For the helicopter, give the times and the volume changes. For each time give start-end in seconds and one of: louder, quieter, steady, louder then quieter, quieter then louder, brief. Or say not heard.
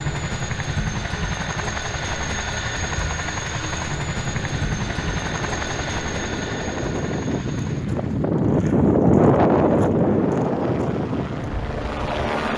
0.0-12.5 quieter then louder.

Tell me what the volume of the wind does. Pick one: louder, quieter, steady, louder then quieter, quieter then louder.
louder then quieter.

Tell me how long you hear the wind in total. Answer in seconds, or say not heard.
8 s.